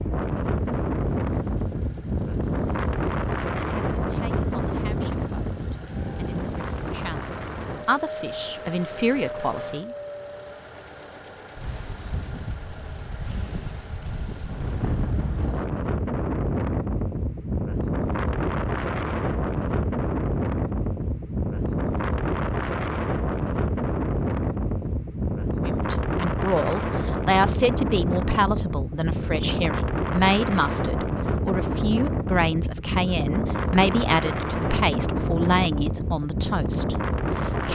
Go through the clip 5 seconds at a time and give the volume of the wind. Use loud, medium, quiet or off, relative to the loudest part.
loud, medium, medium, loud, loud, loud, loud, loud.